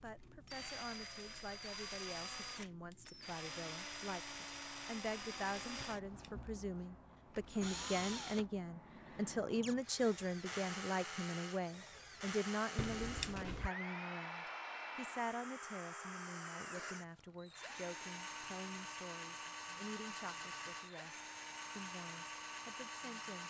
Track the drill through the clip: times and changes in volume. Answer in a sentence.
The drill can be heard from 0.0 to 23.4 s, at a steady volume.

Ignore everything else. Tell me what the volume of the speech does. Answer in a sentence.
The volume of the speech goes up, then down.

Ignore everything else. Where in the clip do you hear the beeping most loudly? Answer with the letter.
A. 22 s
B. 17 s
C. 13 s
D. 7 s
C.